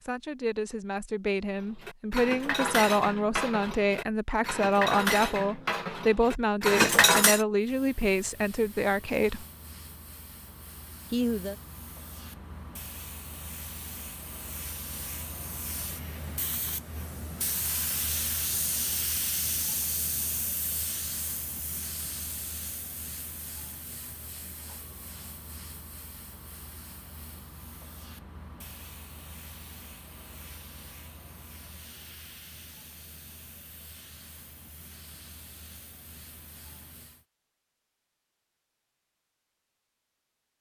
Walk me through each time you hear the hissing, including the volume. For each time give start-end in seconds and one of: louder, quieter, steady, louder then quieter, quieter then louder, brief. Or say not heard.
7.5-37.2 louder then quieter.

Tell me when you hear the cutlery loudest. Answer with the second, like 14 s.
7 s.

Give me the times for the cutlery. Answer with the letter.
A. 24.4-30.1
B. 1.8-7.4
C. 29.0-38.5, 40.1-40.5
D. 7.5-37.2
B.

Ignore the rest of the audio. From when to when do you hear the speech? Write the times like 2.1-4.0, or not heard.
0.0-9.4, 11.1-11.6.